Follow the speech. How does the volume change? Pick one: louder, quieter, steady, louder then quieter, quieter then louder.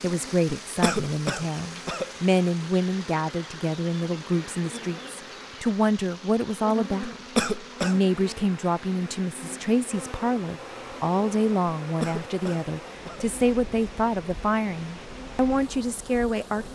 steady.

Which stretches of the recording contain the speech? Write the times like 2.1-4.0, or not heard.
0.0-7.2, 7.8-16.7.